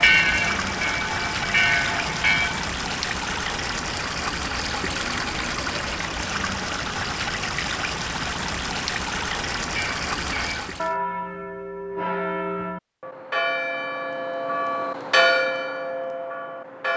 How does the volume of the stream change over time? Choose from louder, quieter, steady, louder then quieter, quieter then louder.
steady.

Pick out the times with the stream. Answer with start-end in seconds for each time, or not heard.
0.0-10.9.